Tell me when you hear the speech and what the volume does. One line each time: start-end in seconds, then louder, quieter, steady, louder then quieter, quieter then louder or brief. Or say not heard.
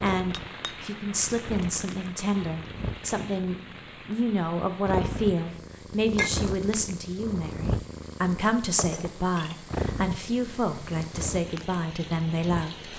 0.0-12.9 steady.